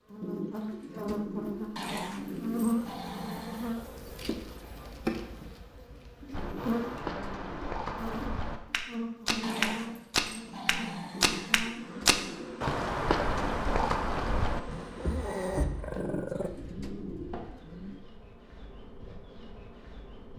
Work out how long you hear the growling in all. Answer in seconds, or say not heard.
6 s.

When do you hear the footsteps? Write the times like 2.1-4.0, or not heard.
6.3-16.0.